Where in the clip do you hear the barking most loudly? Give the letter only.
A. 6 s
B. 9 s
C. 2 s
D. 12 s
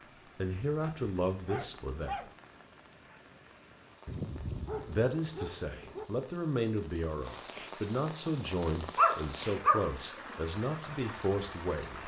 B.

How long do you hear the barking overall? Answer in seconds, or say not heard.
5 s.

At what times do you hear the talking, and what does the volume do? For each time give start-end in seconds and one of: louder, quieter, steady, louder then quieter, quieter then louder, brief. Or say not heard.
0.3-2.2 brief
4.8-12.0 steady.